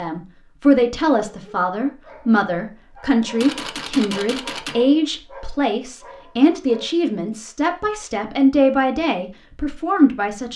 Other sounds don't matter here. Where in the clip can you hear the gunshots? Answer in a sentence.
You can hear the gunshots from 3.4 to 4.8 s.